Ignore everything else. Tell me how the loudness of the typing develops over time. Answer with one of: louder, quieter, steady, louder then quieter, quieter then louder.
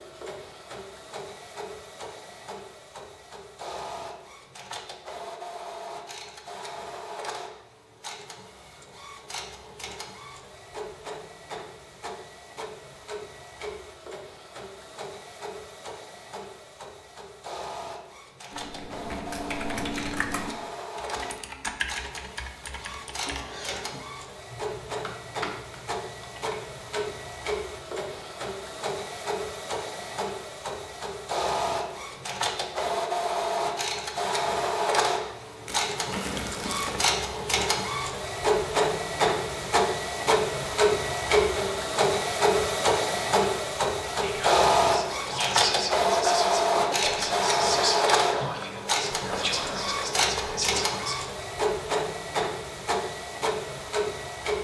quieter.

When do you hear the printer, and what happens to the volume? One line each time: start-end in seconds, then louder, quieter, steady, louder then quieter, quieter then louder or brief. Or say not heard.
0.0-54.6 louder.